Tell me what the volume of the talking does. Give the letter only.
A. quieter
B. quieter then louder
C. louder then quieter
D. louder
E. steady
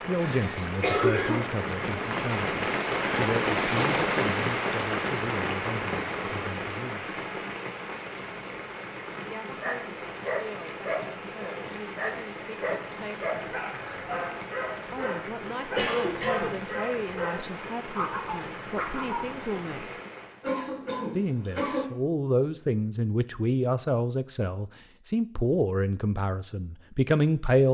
B.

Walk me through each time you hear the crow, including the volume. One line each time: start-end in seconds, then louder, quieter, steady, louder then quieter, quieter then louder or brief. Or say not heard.
not heard.